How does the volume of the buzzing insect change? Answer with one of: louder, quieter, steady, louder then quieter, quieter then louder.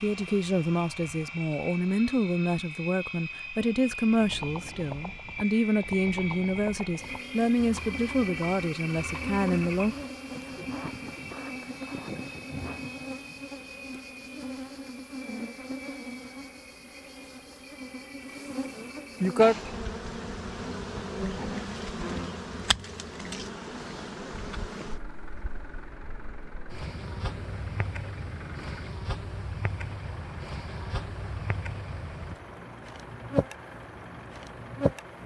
louder then quieter.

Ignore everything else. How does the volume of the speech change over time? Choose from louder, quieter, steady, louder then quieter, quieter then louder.
steady.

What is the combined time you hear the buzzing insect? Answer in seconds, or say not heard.
28 s.